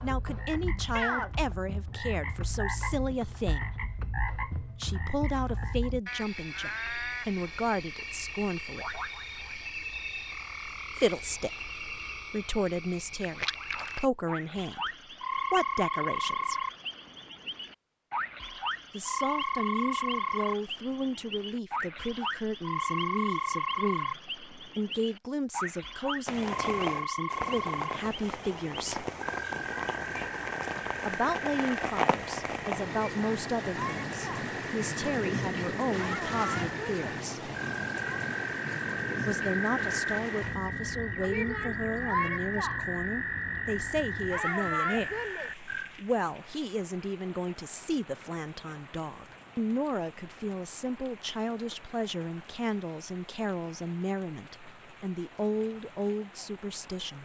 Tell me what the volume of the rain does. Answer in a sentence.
The volume of the rain goes down.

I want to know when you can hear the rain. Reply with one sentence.
You can hear the rain from 26.2 to 57.2 s.